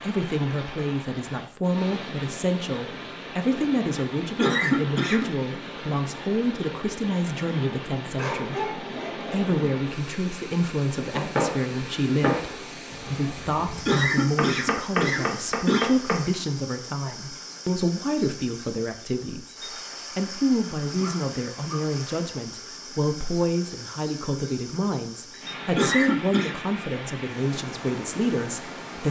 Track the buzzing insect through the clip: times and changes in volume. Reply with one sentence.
You can't hear the buzzing insect here.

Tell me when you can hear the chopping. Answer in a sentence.
You can hear the chopping from 10.9 to 16.2 s.